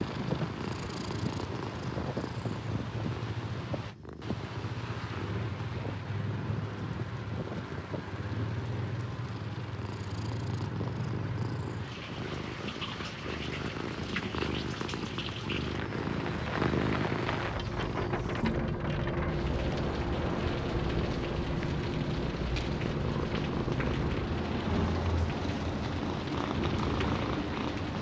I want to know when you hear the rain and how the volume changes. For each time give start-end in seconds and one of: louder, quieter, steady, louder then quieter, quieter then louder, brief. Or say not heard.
0.0-27.9 steady.